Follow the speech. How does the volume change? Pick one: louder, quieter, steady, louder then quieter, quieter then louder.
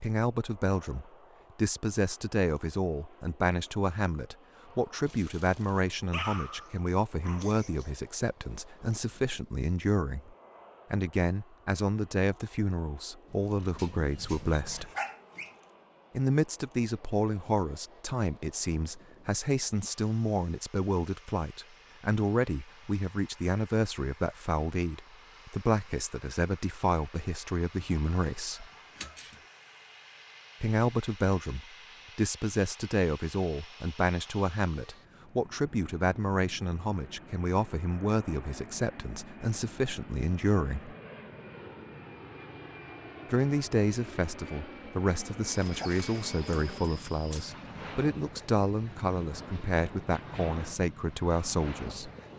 steady.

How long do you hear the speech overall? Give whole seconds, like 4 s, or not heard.
46 s.